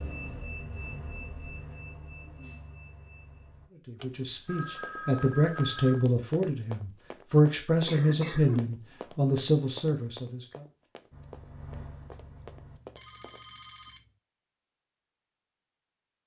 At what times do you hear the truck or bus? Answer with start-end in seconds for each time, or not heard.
0.0-3.7, 11.1-12.8.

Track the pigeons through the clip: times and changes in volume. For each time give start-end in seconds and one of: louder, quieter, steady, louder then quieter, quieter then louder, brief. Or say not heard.
not heard.